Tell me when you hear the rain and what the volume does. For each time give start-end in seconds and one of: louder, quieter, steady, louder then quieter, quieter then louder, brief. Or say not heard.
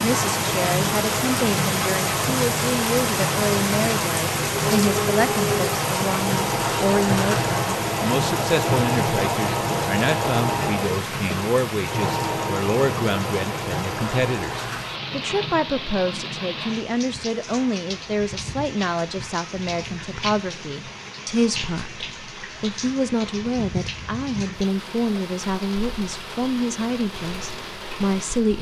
0.0-28.5 quieter.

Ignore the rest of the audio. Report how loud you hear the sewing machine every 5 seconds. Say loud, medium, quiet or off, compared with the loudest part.
medium, loud, loud, off, off, off.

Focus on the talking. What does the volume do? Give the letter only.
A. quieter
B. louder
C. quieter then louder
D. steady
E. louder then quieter
D.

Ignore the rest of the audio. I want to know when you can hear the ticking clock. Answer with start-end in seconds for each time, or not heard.
not heard.